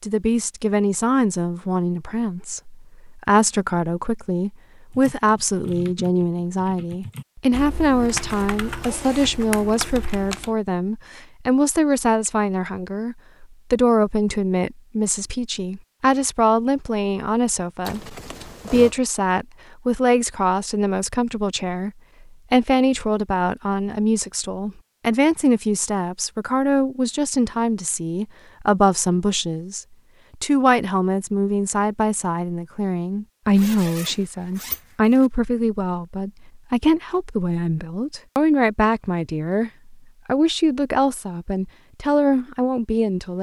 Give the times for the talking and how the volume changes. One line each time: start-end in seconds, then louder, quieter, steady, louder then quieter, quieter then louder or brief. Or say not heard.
0.0-21.9 steady
22.5-43.3 steady.